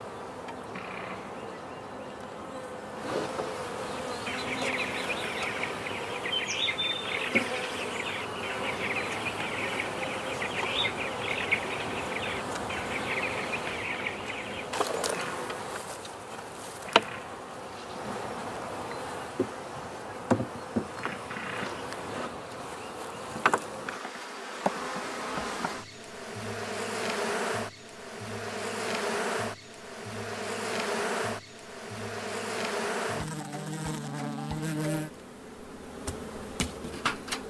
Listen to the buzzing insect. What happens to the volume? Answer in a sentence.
The volume of the buzzing insect stays about the same.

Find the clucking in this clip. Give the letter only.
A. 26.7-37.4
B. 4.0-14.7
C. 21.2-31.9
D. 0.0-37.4
B.